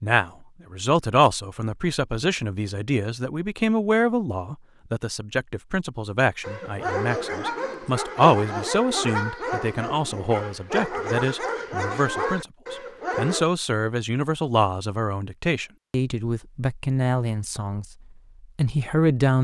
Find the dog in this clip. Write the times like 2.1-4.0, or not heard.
6.4-13.4.